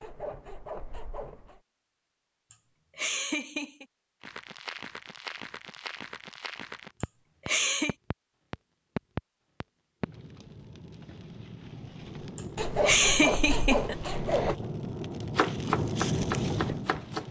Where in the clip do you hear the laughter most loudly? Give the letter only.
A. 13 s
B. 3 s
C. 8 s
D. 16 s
A.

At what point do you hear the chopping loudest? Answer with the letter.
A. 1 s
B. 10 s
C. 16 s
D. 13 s
C.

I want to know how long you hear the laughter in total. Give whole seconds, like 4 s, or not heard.
4 s.